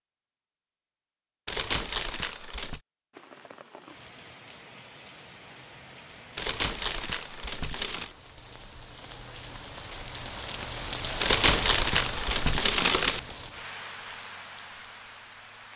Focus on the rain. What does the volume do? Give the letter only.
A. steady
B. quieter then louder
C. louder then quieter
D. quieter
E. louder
C.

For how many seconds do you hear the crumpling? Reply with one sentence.
The crumpling can be heard for 5 seconds in total.